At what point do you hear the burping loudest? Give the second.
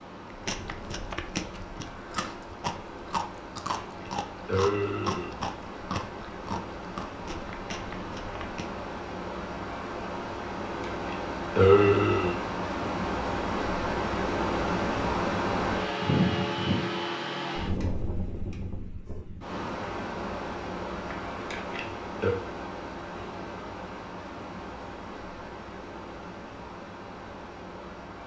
12 s.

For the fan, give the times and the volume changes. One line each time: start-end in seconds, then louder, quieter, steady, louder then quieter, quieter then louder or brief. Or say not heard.
0.0-28.2 louder then quieter.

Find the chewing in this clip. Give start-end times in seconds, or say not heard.
0.3-8.8.